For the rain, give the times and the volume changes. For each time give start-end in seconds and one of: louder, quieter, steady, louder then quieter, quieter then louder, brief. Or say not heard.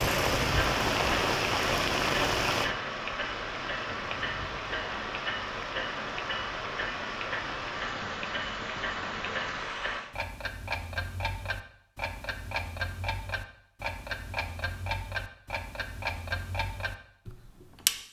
0.0-10.2 quieter.